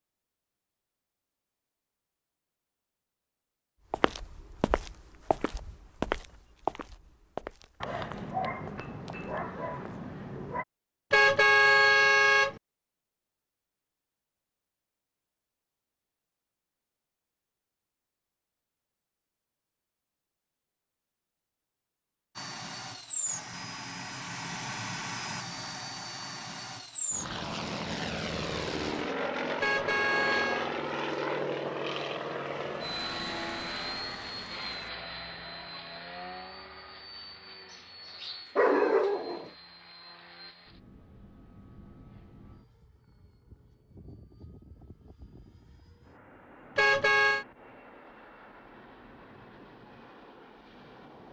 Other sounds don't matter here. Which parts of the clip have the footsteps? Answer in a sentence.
The footsteps can be heard from 3.9 to 10.1 s.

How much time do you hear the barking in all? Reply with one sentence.
The barking can be heard for 5 seconds in total.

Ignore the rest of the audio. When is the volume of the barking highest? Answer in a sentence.
The loudest moment of the barking is at 39 seconds.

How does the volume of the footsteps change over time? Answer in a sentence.
The loudness of the footsteps goes down.